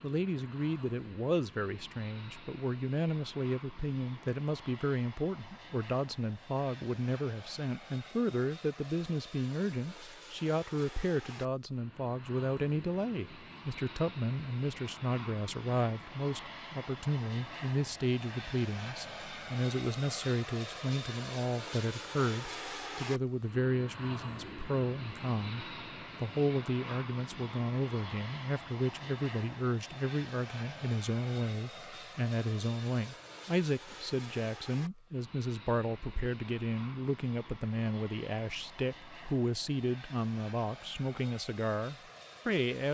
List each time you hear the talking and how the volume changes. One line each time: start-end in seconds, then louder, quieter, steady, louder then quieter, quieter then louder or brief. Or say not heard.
0.0-42.9 steady.